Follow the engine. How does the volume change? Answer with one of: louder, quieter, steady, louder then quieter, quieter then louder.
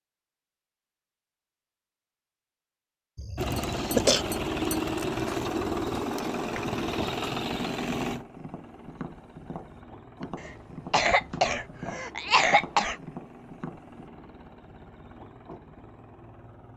quieter.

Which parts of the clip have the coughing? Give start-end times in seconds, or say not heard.
3.1-4.2, 10.4-12.9.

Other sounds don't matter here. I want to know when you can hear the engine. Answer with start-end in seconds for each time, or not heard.
3.4-16.7.